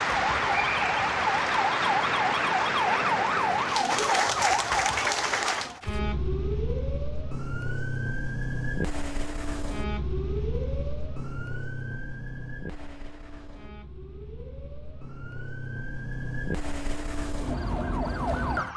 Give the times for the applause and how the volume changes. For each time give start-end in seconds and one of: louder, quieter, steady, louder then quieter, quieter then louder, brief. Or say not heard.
0.0-5.8 steady.